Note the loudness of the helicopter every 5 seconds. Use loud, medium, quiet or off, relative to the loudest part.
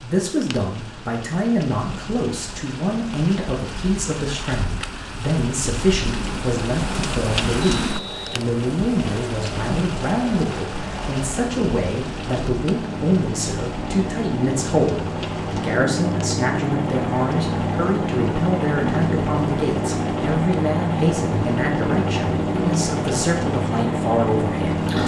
off, quiet, medium, loud, loud.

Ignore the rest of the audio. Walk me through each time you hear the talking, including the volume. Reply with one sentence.
The talking can be heard from 0.0 to 25.0 s, at a steady volume.